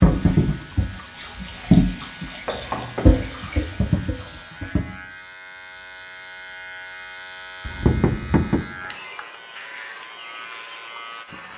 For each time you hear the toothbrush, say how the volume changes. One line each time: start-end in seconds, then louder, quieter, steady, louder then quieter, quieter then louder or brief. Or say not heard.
not heard.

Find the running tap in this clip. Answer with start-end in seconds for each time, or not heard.
0.0-4.8.